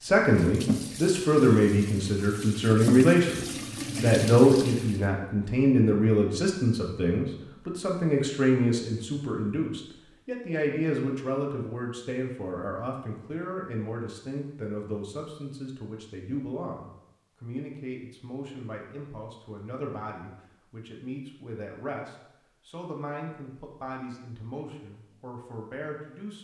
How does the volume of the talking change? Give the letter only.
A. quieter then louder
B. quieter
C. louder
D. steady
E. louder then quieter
B.